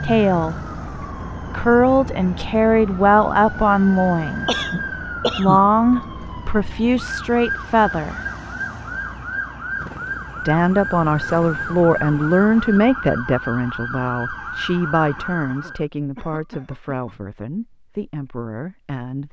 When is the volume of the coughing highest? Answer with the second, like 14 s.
5 s.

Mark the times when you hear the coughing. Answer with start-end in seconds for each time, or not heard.
4.5-5.7, 15.2-17.1.